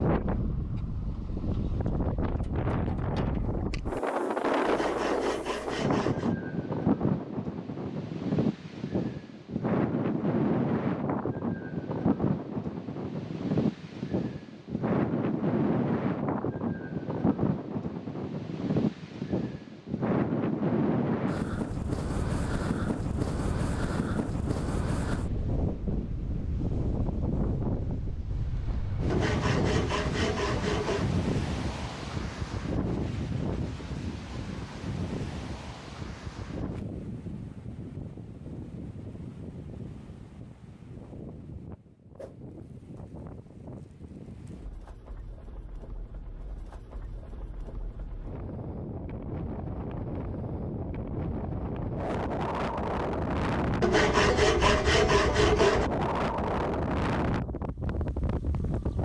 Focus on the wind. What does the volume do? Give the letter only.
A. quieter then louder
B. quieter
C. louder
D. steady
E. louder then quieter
A.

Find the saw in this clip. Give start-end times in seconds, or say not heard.
4.7-6.3, 29.1-31.2, 53.8-55.9.